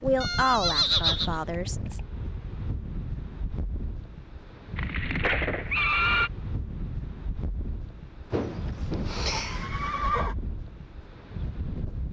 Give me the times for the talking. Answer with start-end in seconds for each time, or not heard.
0.0-2.0.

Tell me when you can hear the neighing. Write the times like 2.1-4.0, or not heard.
0.2-2.0, 4.8-6.3, 8.3-10.3.